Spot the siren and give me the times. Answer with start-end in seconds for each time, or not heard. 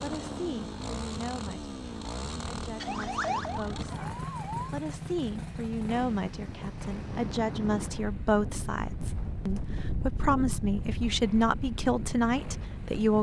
2.8-4.8.